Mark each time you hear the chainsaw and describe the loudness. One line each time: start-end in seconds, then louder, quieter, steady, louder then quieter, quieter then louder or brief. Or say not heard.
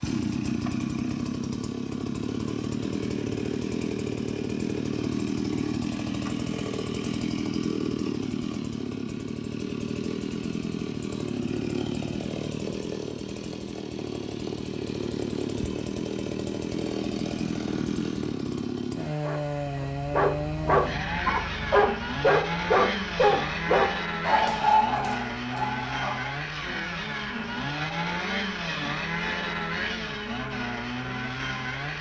0.0-31.9 steady.